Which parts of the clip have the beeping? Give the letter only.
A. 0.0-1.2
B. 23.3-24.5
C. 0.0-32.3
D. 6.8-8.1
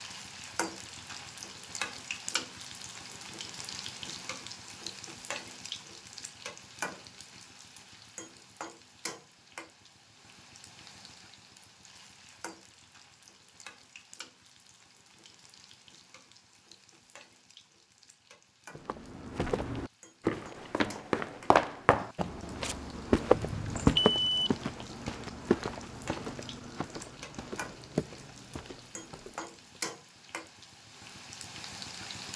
B.